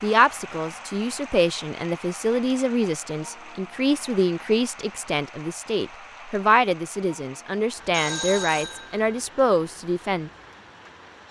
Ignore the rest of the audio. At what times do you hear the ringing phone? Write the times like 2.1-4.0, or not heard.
7.9-9.1.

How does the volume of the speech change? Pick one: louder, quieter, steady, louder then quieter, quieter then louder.
steady.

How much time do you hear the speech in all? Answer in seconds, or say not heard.
10 s.